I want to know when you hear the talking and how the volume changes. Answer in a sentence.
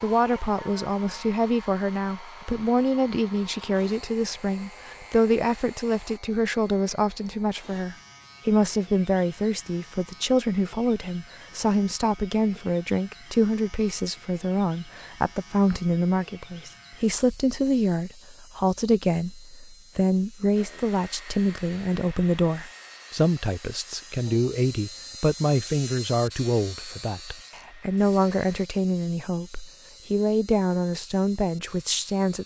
The talking can be heard from 0.0 to 32.4 s, at a steady volume.